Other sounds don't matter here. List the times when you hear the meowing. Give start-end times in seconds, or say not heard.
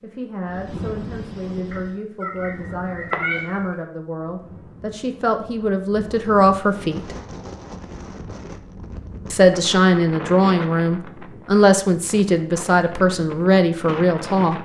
1.7-3.7.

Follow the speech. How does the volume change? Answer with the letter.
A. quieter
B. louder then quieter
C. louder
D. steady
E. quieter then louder
C.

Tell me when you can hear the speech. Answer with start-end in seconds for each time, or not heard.
0.0-7.2, 9.3-14.6.